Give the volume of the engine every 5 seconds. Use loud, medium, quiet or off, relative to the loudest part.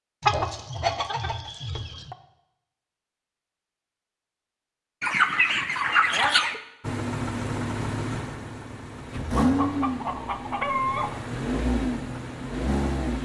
off, loud, loud.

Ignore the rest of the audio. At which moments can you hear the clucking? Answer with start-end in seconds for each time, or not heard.
0.2-2.1, 5.0-6.6, 9.3-11.2.